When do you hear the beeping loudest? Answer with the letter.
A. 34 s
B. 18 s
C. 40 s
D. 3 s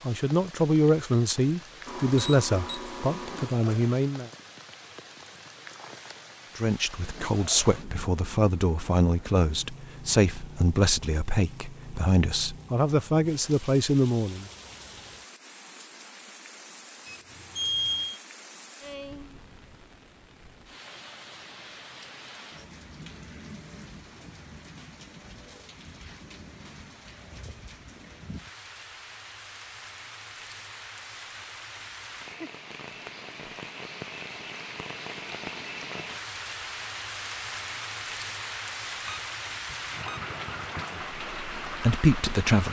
B.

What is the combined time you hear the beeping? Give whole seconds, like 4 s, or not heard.
5 s.